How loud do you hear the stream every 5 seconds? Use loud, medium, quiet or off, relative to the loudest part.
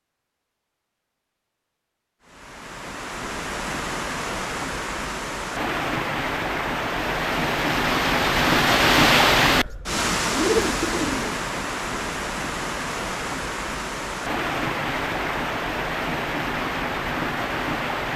medium, loud, medium, medium.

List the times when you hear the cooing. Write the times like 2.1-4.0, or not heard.
9.8-11.4.